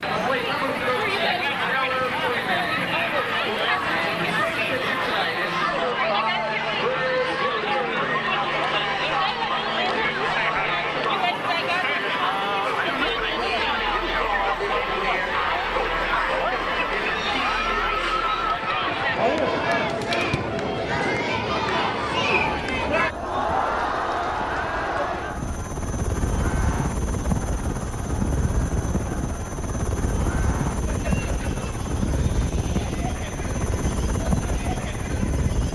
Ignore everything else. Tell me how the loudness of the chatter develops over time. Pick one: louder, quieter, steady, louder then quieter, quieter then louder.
quieter.